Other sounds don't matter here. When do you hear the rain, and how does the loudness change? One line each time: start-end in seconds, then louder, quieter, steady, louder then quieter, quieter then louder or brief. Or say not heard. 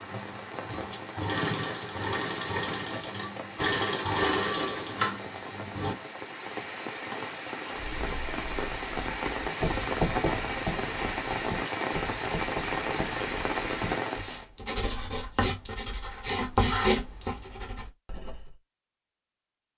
0.0-14.4 louder.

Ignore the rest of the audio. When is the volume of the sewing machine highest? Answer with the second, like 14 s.
4 s.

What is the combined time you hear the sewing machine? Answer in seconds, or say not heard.
6 s.